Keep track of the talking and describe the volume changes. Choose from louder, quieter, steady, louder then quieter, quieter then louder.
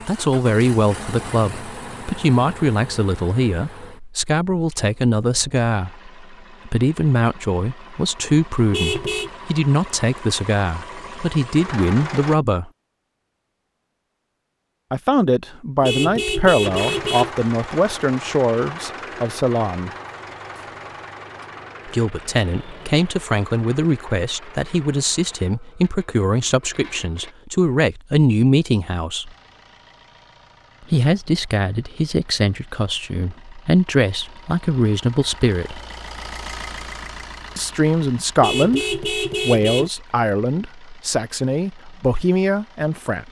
steady.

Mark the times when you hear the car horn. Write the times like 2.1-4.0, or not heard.
8.7-9.3, 15.8-17.3, 38.4-39.9.